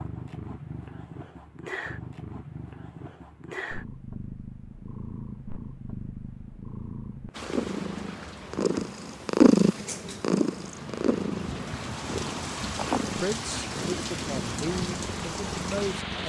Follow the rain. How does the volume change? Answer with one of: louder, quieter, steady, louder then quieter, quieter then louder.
louder.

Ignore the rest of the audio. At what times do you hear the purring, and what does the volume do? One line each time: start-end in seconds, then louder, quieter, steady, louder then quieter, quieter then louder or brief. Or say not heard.
0.0-16.2 louder then quieter.